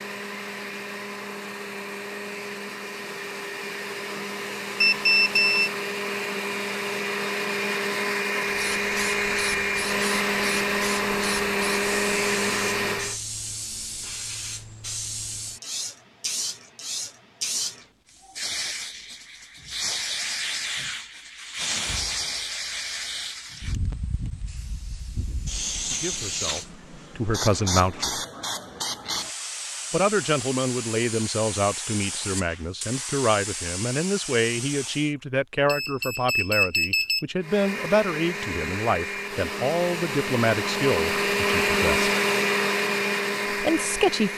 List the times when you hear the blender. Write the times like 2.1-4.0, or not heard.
0.0-13.2, 37.4-44.3.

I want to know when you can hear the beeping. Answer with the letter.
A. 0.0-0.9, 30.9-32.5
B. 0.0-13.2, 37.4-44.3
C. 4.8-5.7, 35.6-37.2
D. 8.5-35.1
C.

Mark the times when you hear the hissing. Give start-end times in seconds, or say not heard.
8.5-35.1.